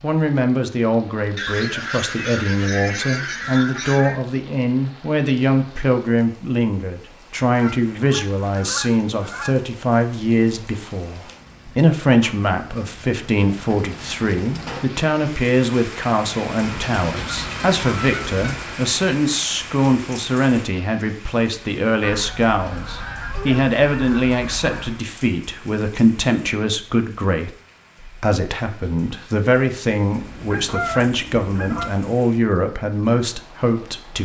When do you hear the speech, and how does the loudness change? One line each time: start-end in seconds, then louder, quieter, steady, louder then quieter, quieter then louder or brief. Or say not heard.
0.0-34.2 steady.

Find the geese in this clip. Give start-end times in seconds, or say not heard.
1.4-4.2, 7.5-9.6, 16.6-18.6, 22.0-25.0, 30.2-31.9.